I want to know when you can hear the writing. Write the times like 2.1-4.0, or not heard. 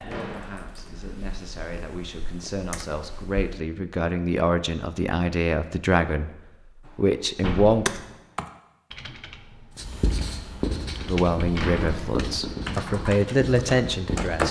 9.8-14.4.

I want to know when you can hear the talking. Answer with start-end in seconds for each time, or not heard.
0.0-7.9, 11.1-14.4.